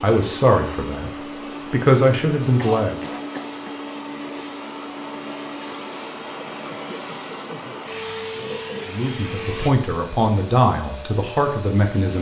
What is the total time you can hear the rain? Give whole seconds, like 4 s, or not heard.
not heard.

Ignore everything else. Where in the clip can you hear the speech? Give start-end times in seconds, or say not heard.
0.0-3.0, 8.8-12.1.